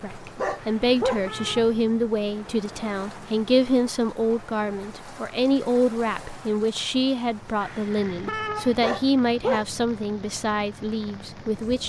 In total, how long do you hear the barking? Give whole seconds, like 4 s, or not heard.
2 s.